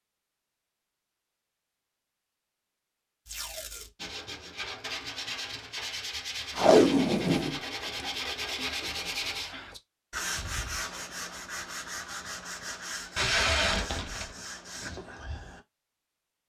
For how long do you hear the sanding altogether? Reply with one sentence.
You can hear the sanding for 12 seconds altogether.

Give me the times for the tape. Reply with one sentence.
The tape can be heard from 3.2 to 3.9 s, from 6.5 to 7.6 s and from 13.2 to 14.3 s.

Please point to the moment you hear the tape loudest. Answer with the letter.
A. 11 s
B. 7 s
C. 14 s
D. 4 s
B.